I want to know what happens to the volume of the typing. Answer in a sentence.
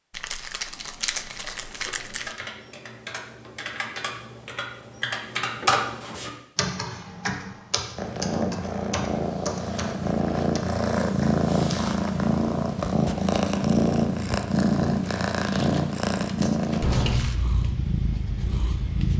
The loudness of the typing goes up, then down.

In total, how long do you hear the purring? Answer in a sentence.
You can hear the purring for 11 seconds altogether.